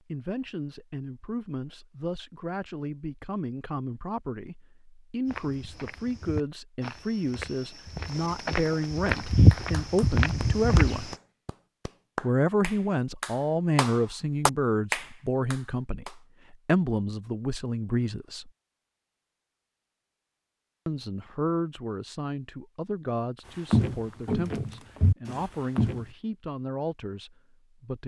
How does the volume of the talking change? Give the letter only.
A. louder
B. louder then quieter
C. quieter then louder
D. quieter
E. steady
B.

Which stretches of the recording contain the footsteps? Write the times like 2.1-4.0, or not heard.
5.2-11.2, 23.7-26.1.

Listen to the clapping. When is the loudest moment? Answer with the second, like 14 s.
15 s.